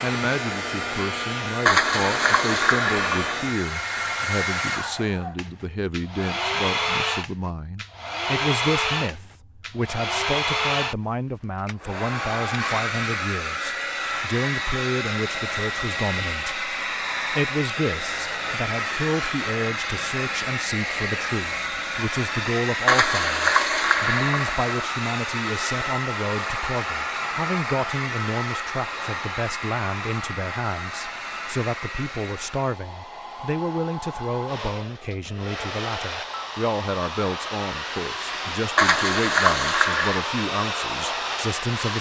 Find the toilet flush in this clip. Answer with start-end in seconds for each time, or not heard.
1.6-3.4, 22.9-24.9, 38.8-40.3.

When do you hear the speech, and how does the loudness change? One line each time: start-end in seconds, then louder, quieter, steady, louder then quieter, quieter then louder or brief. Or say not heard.
0.0-41.9 steady.